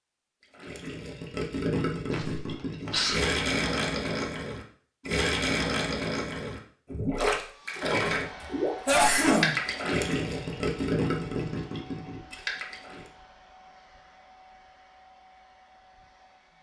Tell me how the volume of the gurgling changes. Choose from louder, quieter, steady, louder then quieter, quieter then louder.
steady.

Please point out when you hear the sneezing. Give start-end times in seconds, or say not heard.
2.1-3.3, 8.4-9.6.